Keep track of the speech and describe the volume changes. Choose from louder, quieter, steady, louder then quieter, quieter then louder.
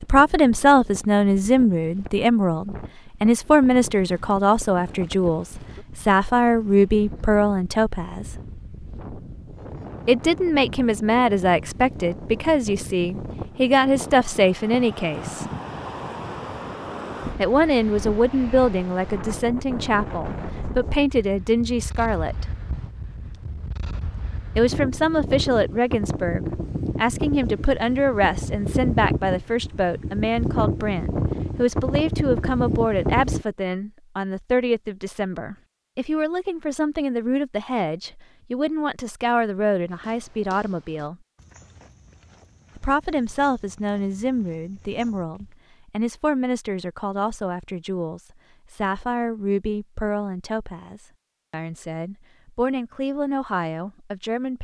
quieter.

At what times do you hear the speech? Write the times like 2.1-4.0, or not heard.
0.0-8.3, 10.1-15.4, 17.4-22.4, 24.6-41.1, 42.8-54.5.